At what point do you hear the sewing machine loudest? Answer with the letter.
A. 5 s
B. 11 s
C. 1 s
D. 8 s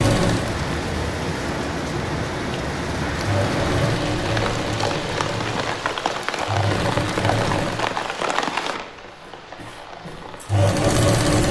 B.